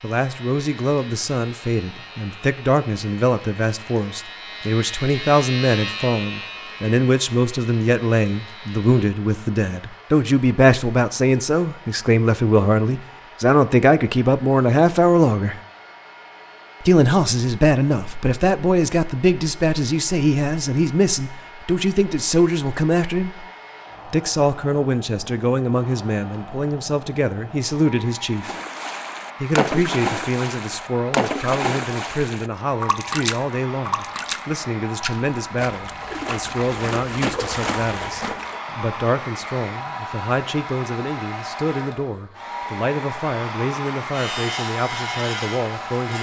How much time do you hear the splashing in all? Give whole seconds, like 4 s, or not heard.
10 s.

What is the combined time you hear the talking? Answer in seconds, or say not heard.
43 s.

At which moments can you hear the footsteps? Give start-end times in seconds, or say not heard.
not heard.